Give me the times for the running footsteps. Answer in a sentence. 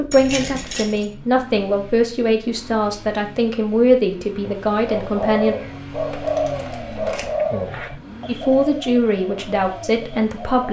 The running footsteps can't be heard in this clip.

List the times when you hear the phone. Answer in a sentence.
The phone can't be heard in this clip.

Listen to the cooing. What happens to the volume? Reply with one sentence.
The loudness of the cooing goes down.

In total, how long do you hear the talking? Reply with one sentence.
You can hear the talking for 8 seconds altogether.